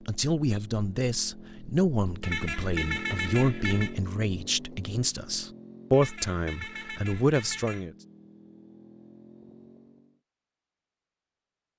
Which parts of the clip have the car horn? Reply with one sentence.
The car horn can be heard from 2.2 to 4.0 s and from 5.9 to 7.8 s.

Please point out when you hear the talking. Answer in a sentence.
The talking can be heard from 0.1 to 7.9 s.